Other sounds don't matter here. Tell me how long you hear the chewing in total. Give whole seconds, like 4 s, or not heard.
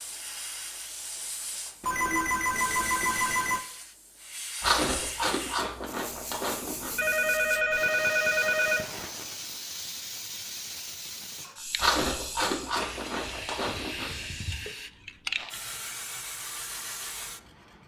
5 s.